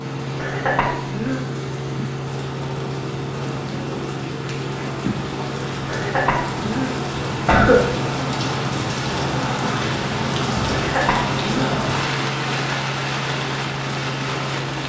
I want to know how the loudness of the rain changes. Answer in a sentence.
The volume of the rain goes up.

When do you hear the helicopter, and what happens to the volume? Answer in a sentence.
The helicopter can be heard from 0.0 to 14.8 s, at a steady volume.